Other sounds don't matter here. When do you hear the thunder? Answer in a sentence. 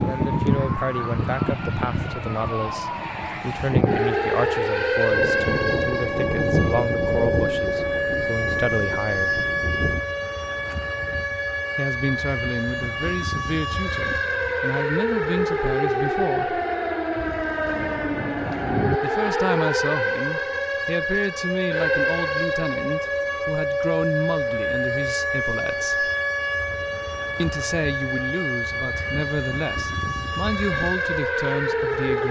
The thunder can be heard from 5.1 to 10.1 s and from 17.1 to 19.0 s.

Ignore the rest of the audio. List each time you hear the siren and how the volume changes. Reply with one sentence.
The siren can be heard from 0.0 to 32.2 s, at a steady volume.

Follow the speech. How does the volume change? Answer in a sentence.
The volume of the speech stays about the same.